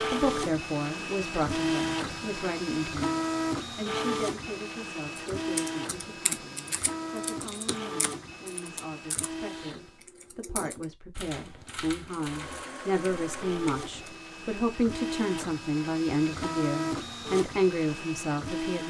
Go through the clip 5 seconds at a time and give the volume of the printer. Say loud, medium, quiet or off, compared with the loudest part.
loud, medium, medium, loud.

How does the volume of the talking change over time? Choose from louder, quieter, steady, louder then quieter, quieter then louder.
quieter then louder.